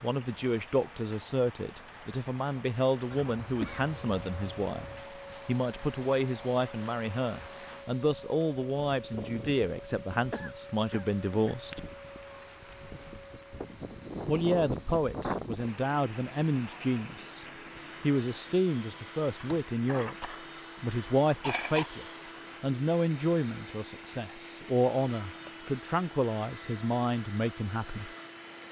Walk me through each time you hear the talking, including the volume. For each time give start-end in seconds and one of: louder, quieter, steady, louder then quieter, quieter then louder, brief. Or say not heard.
0.0-11.8 steady
14.2-28.1 steady.